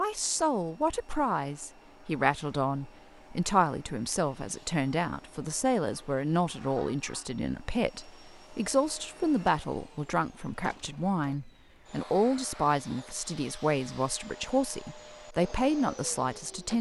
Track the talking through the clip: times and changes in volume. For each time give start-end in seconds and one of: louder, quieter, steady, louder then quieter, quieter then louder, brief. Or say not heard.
0.0-16.7 steady.